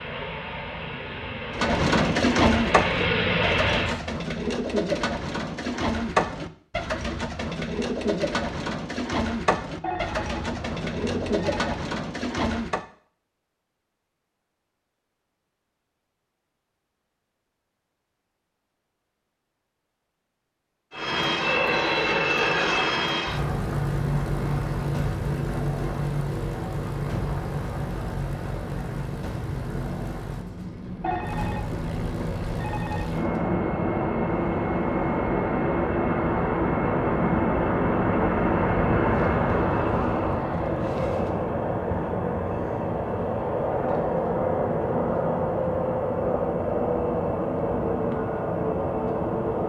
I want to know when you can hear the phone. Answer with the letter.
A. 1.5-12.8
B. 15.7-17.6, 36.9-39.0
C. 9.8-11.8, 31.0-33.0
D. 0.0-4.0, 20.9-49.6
C.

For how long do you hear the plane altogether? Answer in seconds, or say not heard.
33 s.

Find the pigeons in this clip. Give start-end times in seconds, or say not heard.
1.5-12.8.